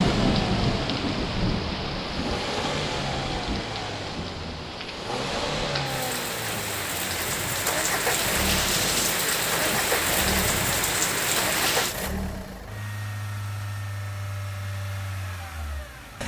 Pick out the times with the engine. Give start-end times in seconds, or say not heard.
0.0-16.2.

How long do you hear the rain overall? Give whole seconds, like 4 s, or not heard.
12 s.